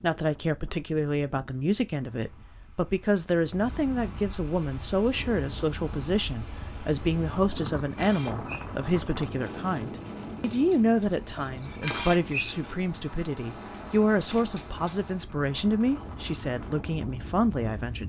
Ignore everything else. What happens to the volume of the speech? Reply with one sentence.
The loudness of the speech stays about the same.